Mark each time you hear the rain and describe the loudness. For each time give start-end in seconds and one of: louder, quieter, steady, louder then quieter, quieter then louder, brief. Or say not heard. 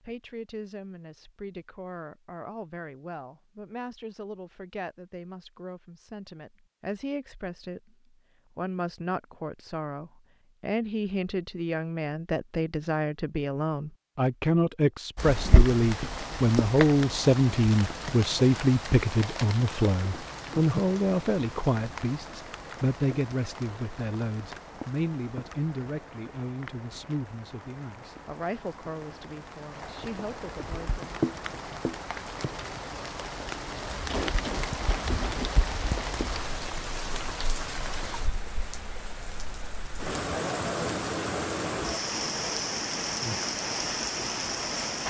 15.2-45.0 quieter then louder.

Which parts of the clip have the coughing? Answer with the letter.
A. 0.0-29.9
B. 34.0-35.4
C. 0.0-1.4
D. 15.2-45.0
B.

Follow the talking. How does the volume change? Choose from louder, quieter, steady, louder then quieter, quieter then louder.
louder then quieter.